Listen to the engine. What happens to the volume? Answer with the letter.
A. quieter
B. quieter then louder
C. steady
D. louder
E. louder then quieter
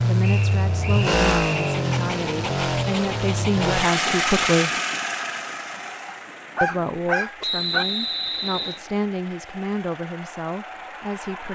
A.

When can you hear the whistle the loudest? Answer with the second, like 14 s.
8 s.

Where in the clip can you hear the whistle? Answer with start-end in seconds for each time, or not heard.
0.2-1.6, 7.4-8.8.